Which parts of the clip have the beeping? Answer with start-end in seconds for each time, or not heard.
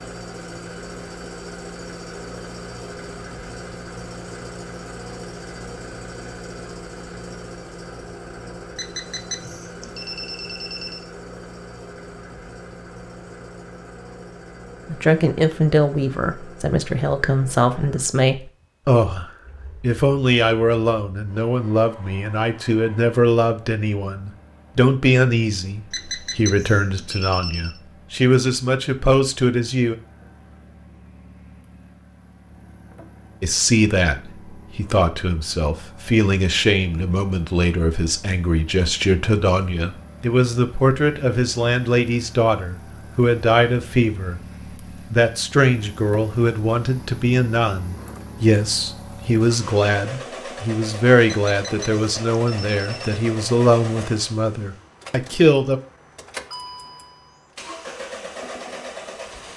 8.8-11.1, 25.9-27.8, 51.5-53.2.